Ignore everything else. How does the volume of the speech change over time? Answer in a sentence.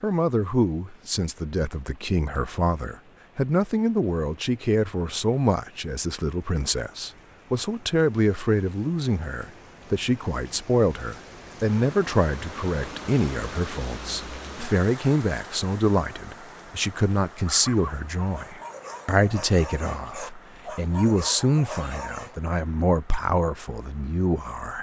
The loudness of the speech stays about the same.